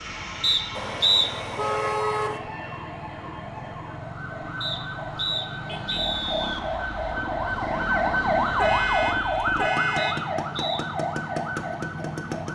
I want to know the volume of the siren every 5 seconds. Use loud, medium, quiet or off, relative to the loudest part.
medium, loud, medium.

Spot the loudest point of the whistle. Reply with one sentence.
The loudest moment of the whistle is at 1 second.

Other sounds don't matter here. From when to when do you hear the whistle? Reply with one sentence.
You can hear the whistle from 0.4 to 1.3 s, from 4.6 to 6.6 s and from 9.9 to 10.8 s.